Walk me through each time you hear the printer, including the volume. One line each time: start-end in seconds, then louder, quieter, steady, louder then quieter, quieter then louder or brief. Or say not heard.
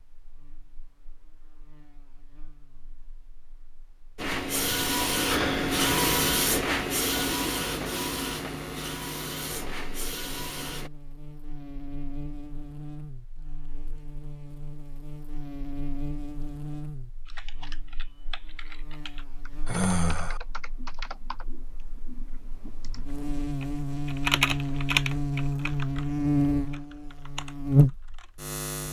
4.2-10.9 quieter.